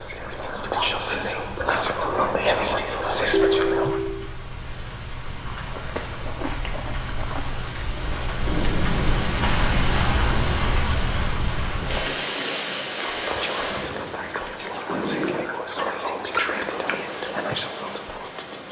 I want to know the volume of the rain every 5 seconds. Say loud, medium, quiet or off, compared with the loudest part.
quiet, loud, loud, medium.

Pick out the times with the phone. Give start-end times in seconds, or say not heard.
3.3-4.3.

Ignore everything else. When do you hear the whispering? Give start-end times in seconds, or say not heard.
0.0-4.0, 13.1-18.6.